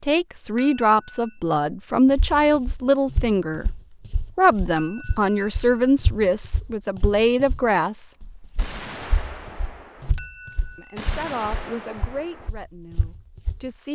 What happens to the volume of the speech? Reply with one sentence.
The volume of the speech goes down.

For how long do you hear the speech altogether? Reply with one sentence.
The speech can be heard for 11 seconds in total.